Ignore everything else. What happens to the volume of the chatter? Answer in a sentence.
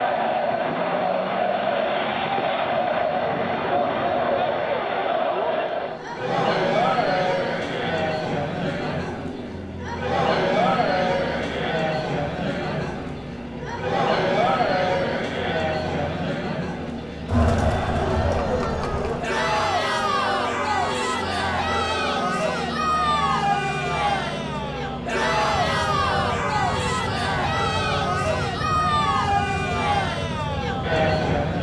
The loudness of the chatter stays about the same.